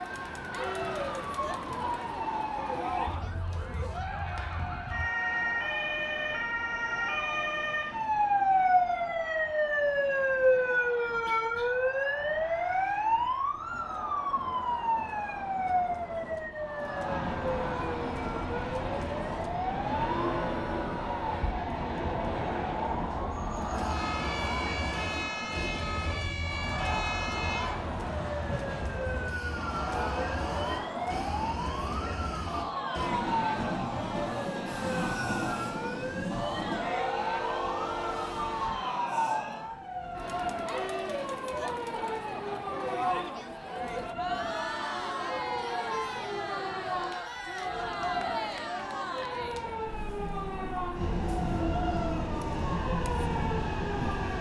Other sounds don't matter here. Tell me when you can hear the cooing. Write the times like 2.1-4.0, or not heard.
not heard.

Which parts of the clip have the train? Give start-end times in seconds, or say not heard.
5.2-38.8, 49.4-54.3.